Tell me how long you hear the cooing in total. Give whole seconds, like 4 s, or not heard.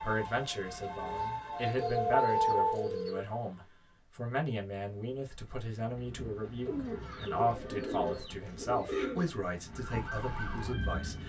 5 s.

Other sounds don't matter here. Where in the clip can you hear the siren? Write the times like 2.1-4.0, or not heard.
0.0-2.9, 9.7-11.2.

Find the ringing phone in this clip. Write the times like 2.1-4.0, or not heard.
1.8-3.2, 7.5-8.3.